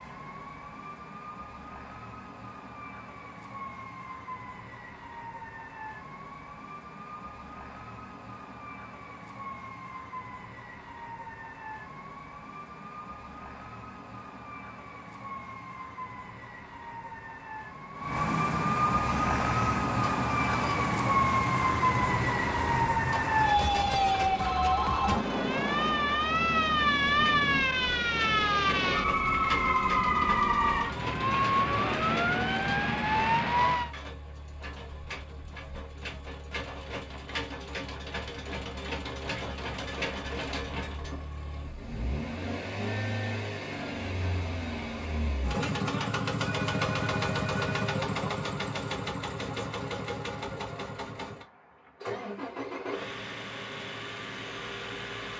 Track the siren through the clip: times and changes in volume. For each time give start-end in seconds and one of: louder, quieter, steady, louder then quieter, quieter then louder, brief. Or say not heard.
0.0-34.0 louder.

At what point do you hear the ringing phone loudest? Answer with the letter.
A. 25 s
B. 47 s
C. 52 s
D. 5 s
A.